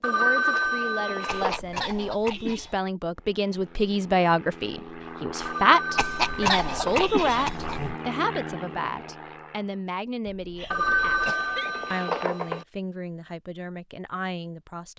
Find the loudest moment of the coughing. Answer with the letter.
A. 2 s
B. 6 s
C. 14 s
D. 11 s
B.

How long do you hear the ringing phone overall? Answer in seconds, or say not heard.
5 s.